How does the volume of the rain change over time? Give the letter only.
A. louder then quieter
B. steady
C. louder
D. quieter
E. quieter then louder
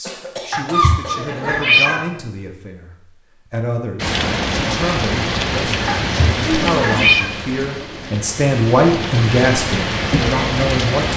E.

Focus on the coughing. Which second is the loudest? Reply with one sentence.
The volume of the coughing peaks at 1 second.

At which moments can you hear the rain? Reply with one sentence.
You can hear the rain from 4.0 to 11.1 s.